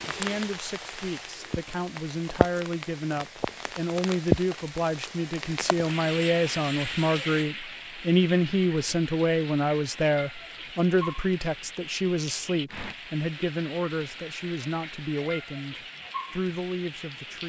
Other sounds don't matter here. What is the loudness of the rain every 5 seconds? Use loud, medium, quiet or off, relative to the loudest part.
loud, medium, medium, medium.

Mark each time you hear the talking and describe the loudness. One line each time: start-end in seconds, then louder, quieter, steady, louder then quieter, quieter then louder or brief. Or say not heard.
0.1-17.4 louder then quieter.